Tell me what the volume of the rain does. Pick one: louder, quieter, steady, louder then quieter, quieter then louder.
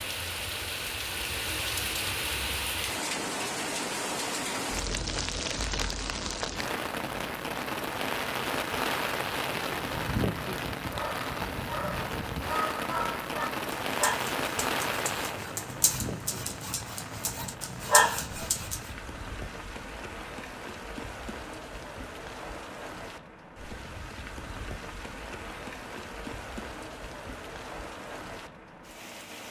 quieter.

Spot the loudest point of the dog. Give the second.
18 s.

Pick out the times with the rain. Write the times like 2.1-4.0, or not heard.
0.0-29.4.